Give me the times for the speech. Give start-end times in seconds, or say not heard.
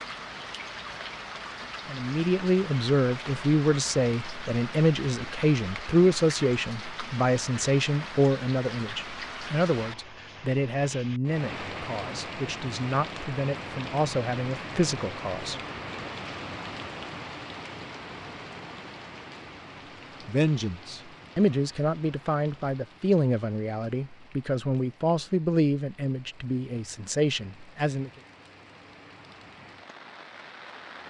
1.9-15.6, 20.2-28.1.